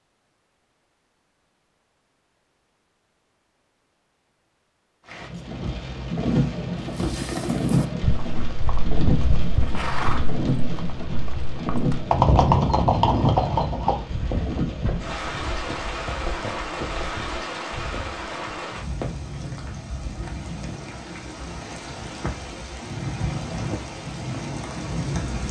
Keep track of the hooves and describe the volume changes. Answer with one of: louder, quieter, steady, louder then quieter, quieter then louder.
louder then quieter.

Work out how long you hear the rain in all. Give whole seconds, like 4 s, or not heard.
20 s.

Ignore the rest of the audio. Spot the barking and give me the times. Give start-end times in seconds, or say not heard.
not heard.